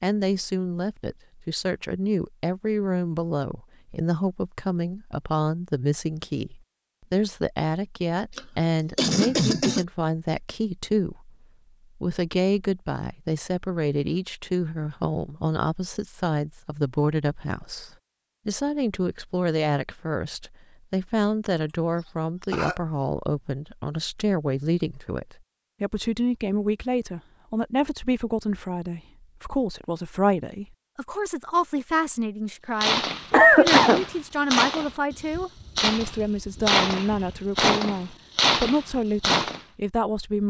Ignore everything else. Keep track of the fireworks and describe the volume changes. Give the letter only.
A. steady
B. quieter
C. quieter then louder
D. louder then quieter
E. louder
A.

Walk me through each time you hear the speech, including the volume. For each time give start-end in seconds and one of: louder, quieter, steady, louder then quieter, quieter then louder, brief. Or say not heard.
0.0-11.3 steady
11.9-40.4 steady.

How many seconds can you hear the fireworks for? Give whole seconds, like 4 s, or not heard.
7 s.